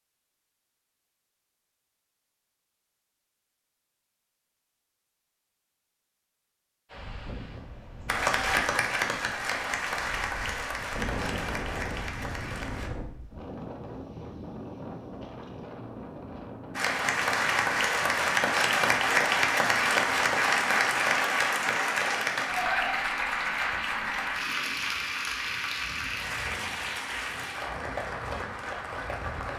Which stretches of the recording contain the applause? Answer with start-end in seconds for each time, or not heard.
8.1-12.9, 16.8-29.5.